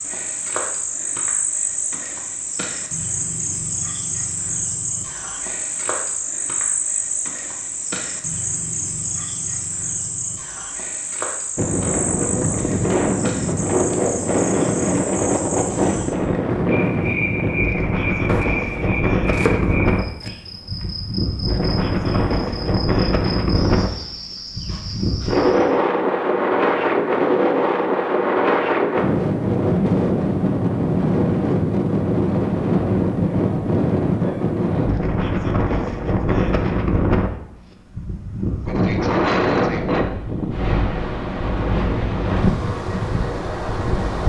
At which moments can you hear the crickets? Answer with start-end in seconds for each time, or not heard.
0.0-25.8.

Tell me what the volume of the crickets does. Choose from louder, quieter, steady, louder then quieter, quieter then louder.
quieter.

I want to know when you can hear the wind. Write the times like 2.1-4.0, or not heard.
11.6-44.2.